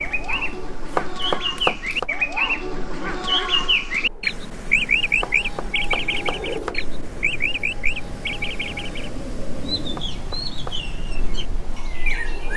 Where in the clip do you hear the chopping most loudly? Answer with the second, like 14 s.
2 s.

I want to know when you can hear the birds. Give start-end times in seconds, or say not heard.
0.0-12.5.